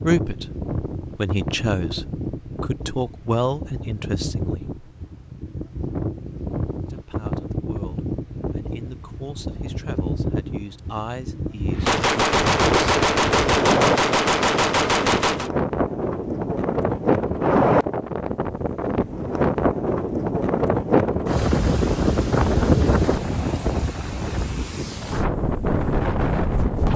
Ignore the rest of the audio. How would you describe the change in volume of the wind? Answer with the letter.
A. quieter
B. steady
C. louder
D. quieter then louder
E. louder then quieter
C.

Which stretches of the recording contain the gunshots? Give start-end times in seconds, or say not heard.
11.8-15.5.